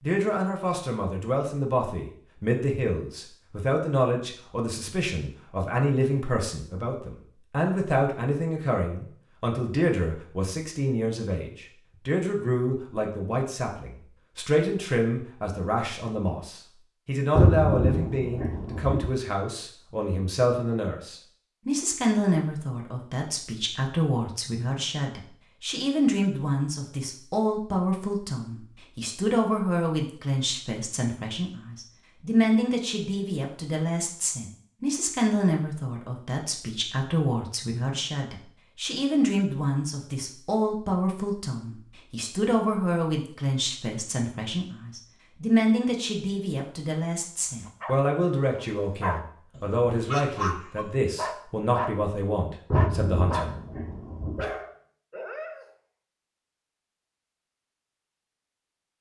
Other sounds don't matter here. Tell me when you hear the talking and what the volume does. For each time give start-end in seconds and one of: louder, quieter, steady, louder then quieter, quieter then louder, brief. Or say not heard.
0.0-53.5 steady.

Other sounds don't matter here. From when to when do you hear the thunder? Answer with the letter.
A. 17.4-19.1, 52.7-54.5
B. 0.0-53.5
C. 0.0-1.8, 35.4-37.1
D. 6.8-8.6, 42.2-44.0
A.